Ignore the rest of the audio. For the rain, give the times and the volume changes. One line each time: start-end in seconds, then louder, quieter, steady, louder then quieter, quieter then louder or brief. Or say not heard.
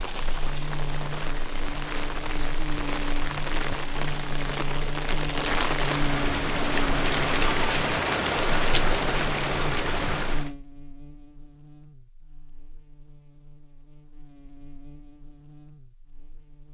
0.0-10.5 louder.